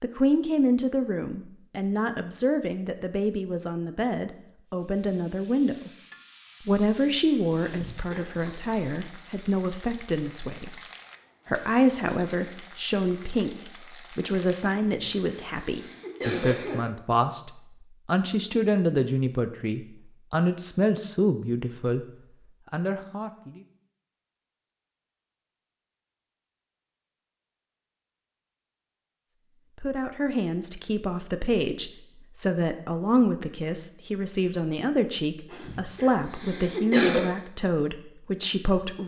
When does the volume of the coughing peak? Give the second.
37 s.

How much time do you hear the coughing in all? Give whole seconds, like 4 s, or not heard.
5 s.